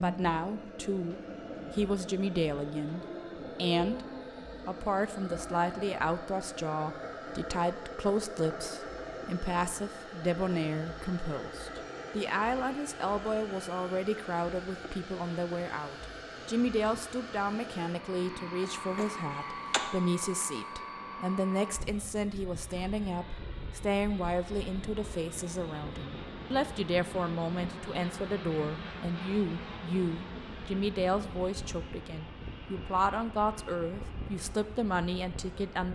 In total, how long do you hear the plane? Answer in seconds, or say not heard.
36 s.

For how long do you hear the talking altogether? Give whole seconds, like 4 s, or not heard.
35 s.